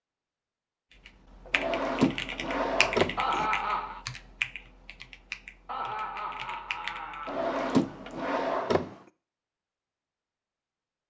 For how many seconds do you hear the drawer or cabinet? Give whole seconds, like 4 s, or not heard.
4 s.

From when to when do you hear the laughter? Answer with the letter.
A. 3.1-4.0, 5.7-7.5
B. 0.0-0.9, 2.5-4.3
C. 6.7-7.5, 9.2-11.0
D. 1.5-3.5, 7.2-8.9
A.